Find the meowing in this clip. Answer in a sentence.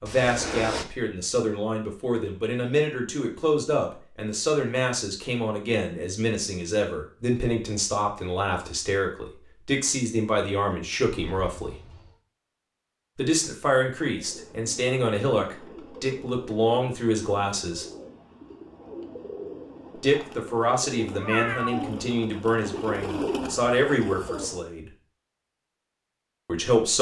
You can hear the meowing from 0.1 to 0.8 s, from 11.1 to 12.2 s and from 21.1 to 22.0 s.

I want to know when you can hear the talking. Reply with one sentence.
The talking can be heard from 0.0 to 11.8 s, from 13.2 to 17.9 s, from 19.9 to 24.9 s and from 26.4 to 26.9 s.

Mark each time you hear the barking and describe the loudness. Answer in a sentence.
The barking can't be heard in this clip.